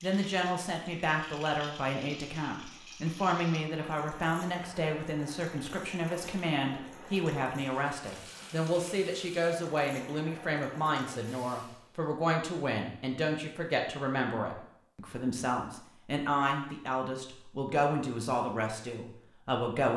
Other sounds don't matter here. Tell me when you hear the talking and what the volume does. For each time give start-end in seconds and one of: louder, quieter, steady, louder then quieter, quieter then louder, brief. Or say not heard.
0.0-19.9 steady.